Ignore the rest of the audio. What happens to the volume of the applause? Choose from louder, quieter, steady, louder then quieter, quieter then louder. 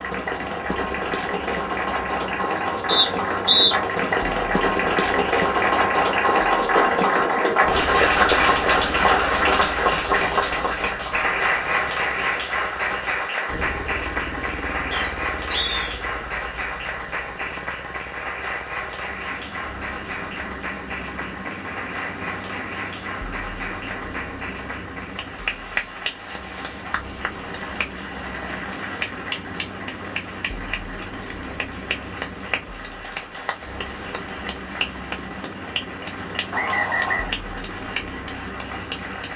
quieter.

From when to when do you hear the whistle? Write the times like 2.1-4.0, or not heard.
2.9-3.8, 14.9-15.8, 36.5-37.4.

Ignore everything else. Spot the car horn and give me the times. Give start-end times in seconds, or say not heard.
not heard.